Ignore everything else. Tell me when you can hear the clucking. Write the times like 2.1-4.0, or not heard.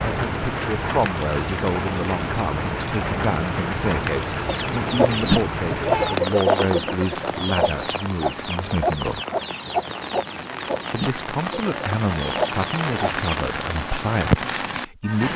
4.5-13.3.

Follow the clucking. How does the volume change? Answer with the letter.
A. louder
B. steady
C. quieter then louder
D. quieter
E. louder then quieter
D.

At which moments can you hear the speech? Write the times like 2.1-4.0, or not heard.
0.0-9.2, 10.9-15.3.